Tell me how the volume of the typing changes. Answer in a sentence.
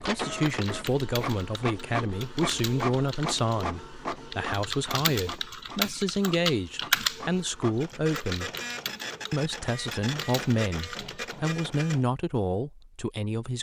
The volume of the typing goes up, then down.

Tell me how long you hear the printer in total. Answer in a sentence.
You can hear the printer for 12 seconds altogether.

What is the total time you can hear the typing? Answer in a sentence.
You can hear the typing for 11 seconds altogether.